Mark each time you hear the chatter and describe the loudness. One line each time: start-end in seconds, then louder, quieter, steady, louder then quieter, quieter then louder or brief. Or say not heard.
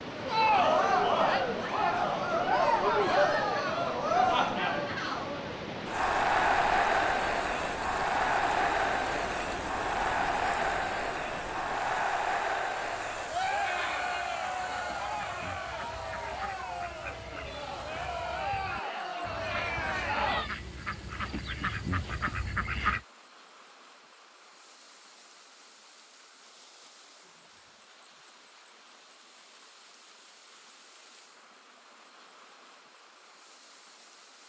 0.1-20.5 quieter.